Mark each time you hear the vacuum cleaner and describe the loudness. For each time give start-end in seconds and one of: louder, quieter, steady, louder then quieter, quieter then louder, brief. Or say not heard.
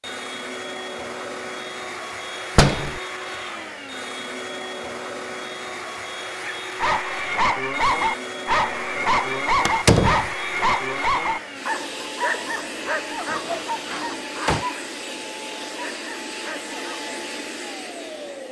0.0-18.4 steady.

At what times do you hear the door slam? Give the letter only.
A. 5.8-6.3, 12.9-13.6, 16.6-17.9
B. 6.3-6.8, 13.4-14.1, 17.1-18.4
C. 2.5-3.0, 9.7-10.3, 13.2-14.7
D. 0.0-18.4
C.